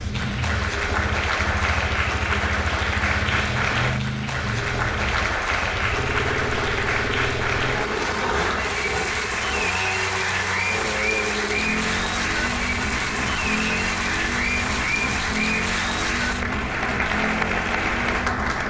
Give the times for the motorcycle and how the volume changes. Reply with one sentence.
You can hear the motorcycle from 0.0 to 18.6 s, at a steady volume.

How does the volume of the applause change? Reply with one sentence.
The volume of the applause stays about the same.